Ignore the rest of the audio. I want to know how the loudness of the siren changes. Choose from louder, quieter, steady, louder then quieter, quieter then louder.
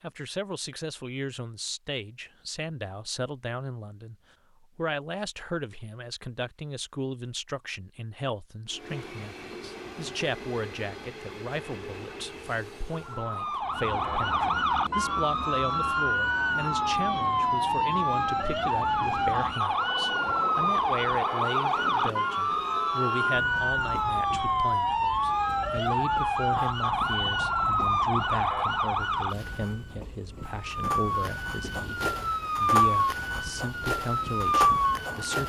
steady.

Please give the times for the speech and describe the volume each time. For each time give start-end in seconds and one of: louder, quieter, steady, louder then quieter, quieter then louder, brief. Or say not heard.
0.0-35.4 steady.